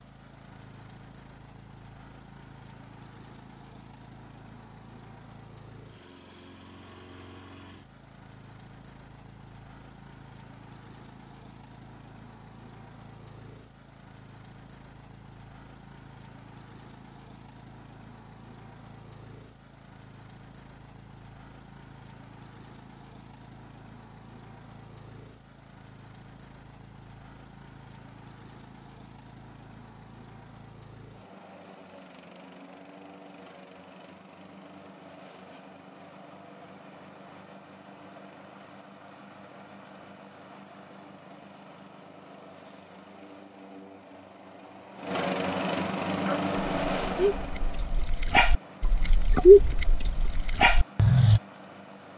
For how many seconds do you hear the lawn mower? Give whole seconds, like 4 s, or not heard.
52 s.